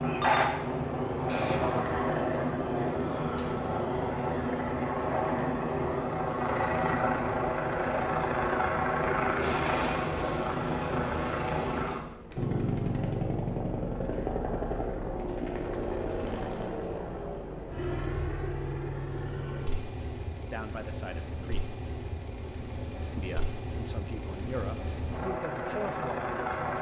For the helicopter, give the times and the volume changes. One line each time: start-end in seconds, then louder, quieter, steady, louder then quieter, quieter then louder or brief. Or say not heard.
0.0-26.7 quieter.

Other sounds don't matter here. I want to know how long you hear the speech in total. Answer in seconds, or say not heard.
5 s.